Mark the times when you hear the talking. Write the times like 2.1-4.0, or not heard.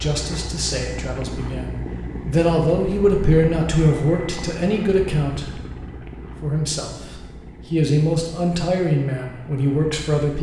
0.0-5.6, 6.4-10.3.